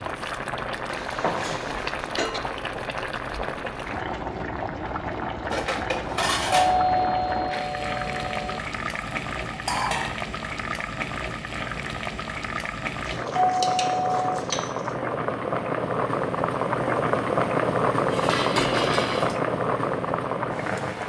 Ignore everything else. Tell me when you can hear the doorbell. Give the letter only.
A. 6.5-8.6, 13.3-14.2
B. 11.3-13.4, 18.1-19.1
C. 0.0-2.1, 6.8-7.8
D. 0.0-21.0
A.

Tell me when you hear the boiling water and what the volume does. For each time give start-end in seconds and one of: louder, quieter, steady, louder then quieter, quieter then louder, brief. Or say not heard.
0.0-21.0 louder.